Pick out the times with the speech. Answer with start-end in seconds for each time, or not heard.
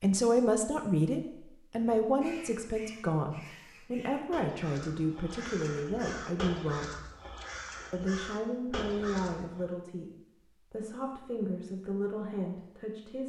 0.0-6.9, 7.9-10.1, 10.7-13.2.